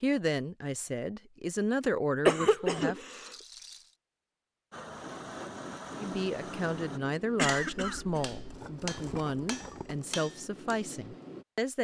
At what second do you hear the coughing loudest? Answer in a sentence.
The loudest moment of the coughing is at 2 seconds.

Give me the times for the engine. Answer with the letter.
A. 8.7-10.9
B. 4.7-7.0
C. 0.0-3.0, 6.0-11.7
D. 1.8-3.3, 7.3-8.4
B.